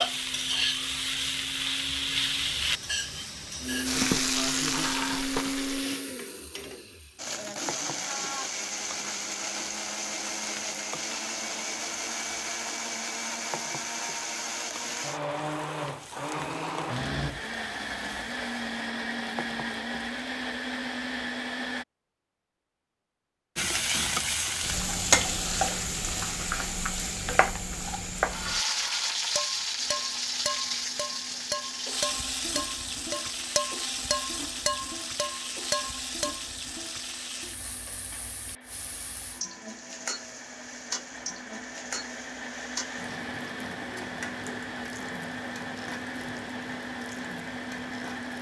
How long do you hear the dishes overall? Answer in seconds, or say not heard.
8 s.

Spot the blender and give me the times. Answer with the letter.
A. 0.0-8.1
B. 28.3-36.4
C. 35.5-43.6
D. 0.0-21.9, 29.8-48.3
D.